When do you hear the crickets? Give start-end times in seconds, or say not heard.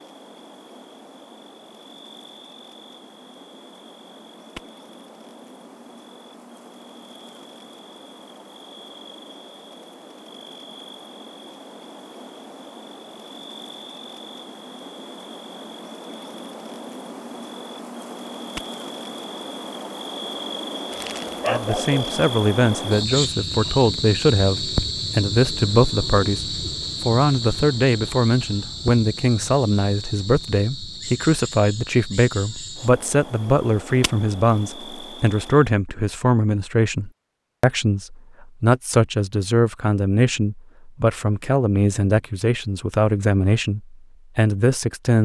0.0-35.8.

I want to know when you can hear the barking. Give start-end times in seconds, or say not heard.
20.9-22.2.